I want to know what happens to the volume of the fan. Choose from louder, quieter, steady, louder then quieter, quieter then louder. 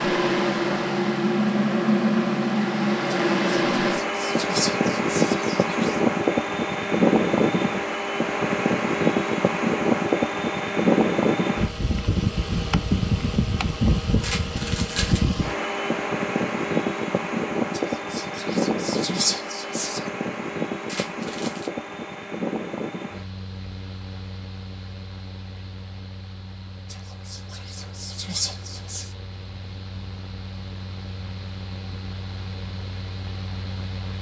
quieter.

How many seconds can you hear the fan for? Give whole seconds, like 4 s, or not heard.
34 s.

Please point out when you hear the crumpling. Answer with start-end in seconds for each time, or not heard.
14.2-15.2, 20.9-21.7.